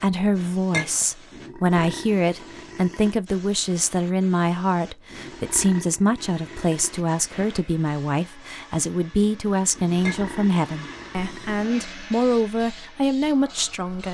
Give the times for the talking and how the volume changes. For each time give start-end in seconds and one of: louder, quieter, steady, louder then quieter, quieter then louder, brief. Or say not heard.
0.0-14.0 steady.